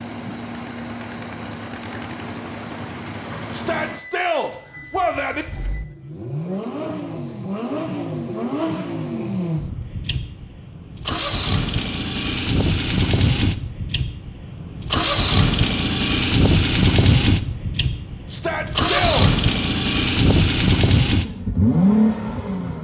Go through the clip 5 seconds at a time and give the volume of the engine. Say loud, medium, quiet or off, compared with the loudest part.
quiet, medium, medium, loud, loud.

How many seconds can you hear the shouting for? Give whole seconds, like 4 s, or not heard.
3 s.